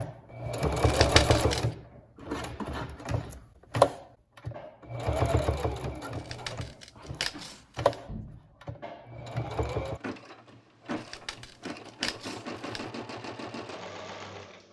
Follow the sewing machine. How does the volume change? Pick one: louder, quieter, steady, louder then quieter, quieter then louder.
quieter.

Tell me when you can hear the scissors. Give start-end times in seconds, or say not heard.
0.8-1.7, 6.2-8.0, 10.9-12.9.